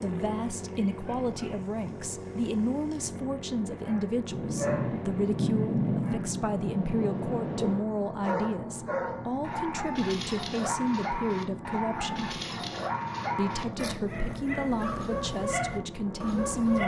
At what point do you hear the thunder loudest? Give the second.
6 s.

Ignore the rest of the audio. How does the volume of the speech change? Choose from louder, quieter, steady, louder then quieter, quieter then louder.
steady.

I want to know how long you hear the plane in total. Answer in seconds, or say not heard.
17 s.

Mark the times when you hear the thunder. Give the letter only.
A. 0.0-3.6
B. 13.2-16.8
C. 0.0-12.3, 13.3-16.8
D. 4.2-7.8
D.